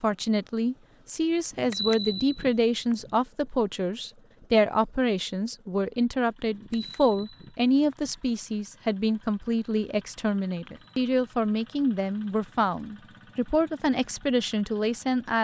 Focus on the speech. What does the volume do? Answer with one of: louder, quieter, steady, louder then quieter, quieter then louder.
steady.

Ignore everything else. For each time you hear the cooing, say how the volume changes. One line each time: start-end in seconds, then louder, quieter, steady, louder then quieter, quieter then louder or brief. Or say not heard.
not heard.